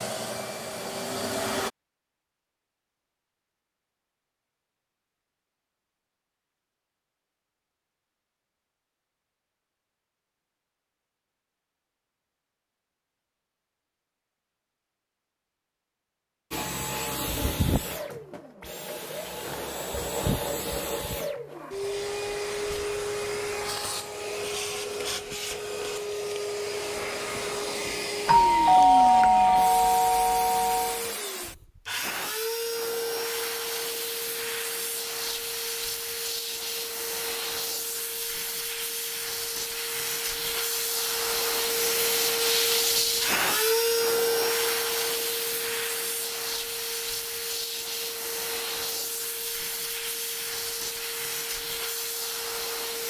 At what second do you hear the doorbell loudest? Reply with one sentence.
The loudest moment of the doorbell is at 29 seconds.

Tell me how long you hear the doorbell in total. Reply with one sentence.
You can hear the doorbell for 3 seconds altogether.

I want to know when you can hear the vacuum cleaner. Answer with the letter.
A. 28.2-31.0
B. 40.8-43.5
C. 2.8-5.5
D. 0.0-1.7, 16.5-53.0
D.